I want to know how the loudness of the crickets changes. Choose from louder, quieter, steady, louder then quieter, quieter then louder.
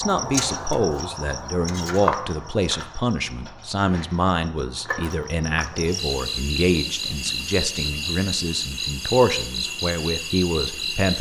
quieter then louder.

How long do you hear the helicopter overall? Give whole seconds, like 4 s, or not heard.
not heard.